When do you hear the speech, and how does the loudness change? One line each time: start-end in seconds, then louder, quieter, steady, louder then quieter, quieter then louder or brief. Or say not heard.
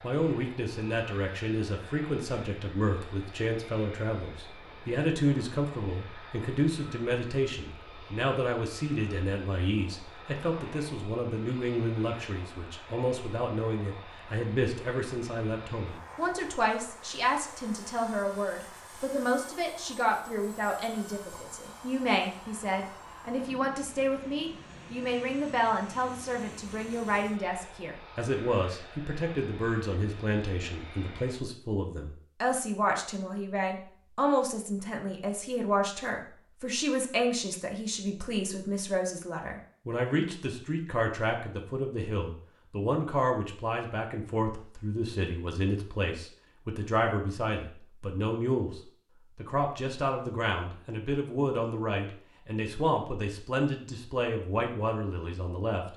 0.0-55.9 steady.